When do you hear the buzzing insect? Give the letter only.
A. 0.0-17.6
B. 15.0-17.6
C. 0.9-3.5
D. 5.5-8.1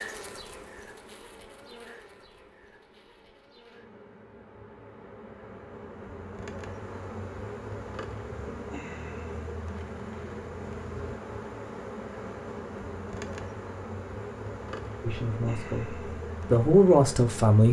A.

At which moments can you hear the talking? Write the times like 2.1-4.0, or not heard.
15.0-17.6.